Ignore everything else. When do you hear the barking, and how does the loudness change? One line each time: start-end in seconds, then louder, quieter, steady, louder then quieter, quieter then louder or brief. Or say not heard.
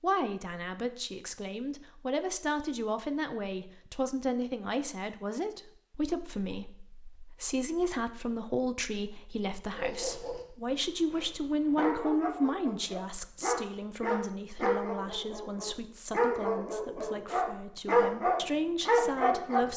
9.7-19.7 louder.